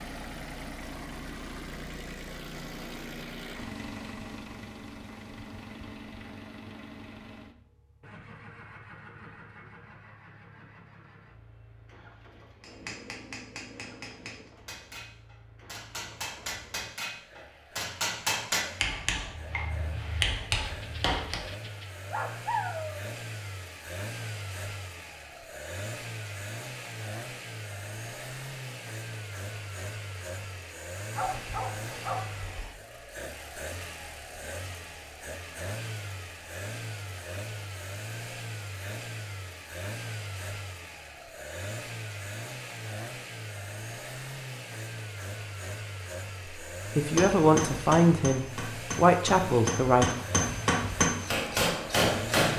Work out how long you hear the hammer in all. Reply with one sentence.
You can hear the hammer for 14 seconds altogether.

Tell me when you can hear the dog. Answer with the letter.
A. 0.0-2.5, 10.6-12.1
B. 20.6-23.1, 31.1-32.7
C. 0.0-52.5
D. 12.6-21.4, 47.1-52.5
B.